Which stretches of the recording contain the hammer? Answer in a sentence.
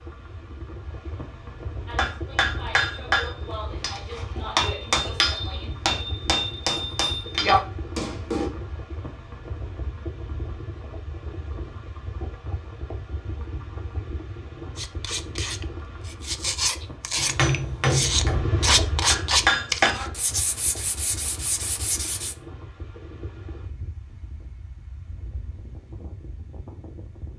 You can hear the hammer from 1.9 to 8.5 s and from 17.1 to 20.1 s.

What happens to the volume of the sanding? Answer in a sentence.
The loudness of the sanding goes up, then down.